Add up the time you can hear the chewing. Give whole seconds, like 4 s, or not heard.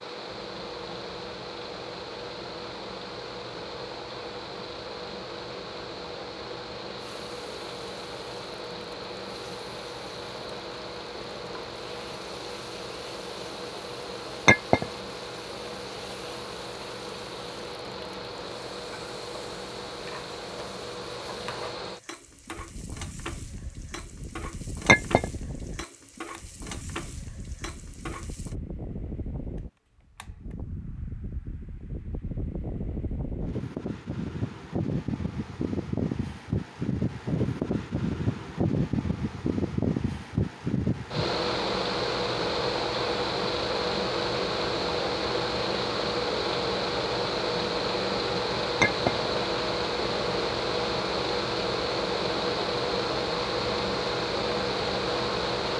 not heard.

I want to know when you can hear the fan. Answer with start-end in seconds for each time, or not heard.
0.0-55.7.